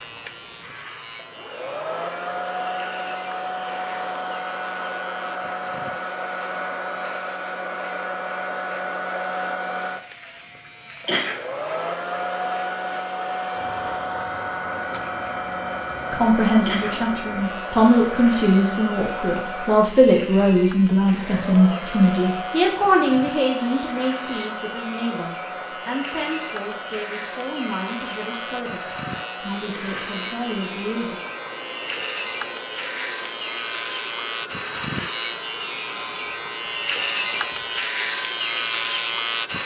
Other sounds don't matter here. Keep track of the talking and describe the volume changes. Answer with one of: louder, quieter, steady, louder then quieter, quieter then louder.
quieter.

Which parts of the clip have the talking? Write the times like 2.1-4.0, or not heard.
16.1-31.2.